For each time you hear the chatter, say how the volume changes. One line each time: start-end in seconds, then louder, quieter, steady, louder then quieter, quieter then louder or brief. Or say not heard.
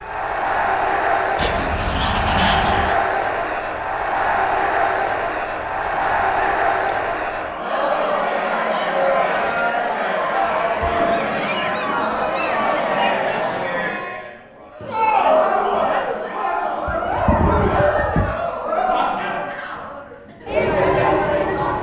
0.0-21.7 steady.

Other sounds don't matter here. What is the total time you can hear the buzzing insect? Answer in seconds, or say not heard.
not heard.